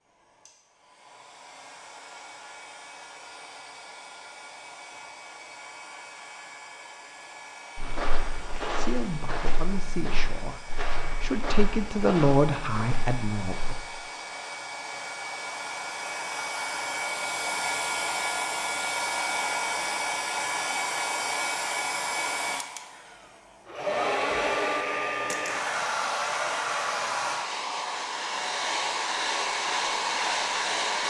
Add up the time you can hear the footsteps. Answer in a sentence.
You can hear the footsteps for 6 seconds altogether.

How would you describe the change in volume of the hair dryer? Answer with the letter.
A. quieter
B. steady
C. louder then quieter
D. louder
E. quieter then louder
D.